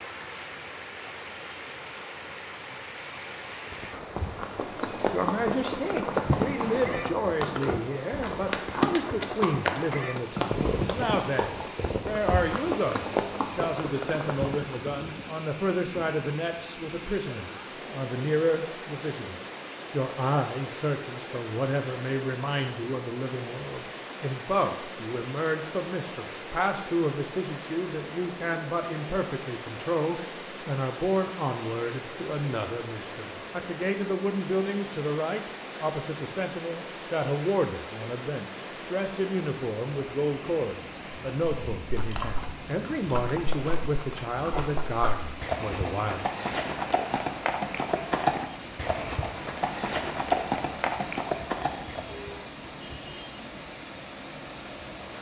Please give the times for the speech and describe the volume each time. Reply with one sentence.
The speech can be heard from 5.1 to 46.2 s, at a steady volume.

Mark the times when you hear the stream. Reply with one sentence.
The stream can be heard from 0.0 to 55.1 s.